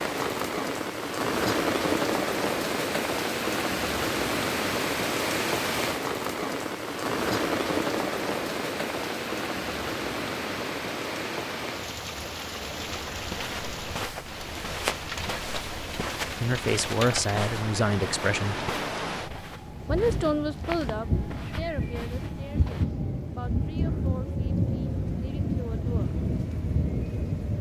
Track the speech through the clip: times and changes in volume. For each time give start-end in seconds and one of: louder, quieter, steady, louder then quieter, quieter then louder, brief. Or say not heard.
16.4-18.6 brief
19.9-26.1 quieter.